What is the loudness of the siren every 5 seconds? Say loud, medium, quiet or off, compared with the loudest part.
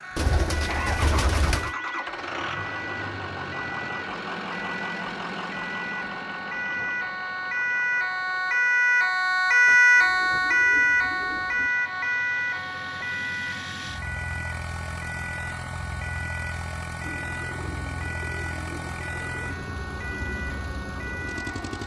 quiet, loud, loud, quiet, quiet.